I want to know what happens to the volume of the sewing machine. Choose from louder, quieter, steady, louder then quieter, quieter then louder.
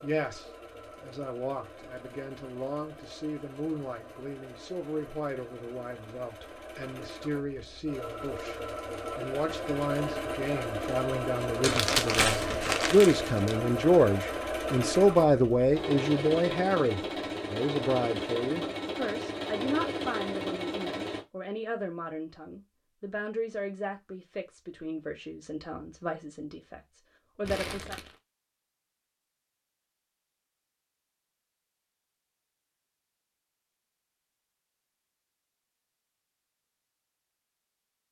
louder.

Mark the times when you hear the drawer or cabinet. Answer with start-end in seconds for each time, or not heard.
not heard.